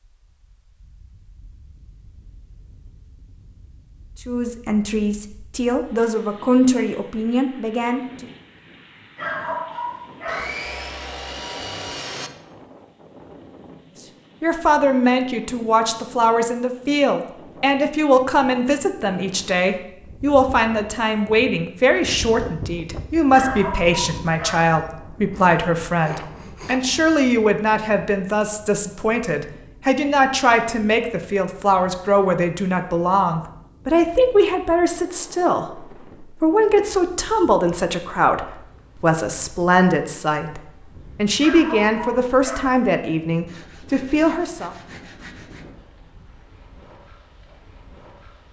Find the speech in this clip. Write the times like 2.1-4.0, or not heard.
4.2-8.2, 14.4-44.8.